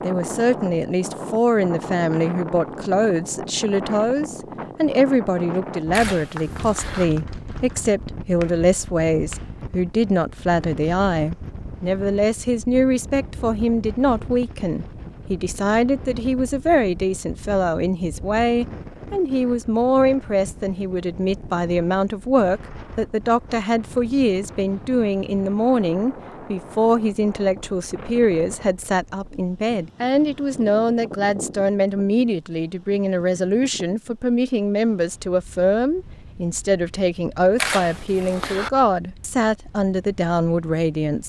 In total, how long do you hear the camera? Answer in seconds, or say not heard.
2 s.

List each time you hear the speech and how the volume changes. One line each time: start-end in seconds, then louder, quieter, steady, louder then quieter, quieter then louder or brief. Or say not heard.
0.0-41.2 steady.